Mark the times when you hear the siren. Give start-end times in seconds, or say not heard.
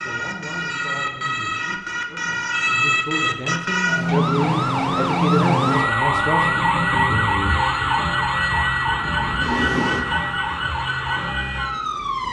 0.0-12.2.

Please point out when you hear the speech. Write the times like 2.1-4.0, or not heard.
0.0-6.5.